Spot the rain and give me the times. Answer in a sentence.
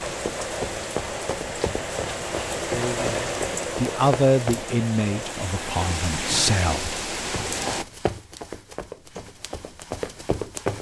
You can hear the rain from 0.0 to 7.8 s.